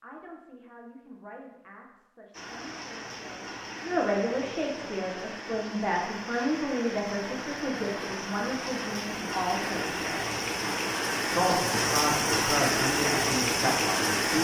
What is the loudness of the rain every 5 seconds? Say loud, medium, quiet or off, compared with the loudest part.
quiet, medium, loud.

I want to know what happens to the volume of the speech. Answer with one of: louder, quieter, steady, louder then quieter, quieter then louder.
louder.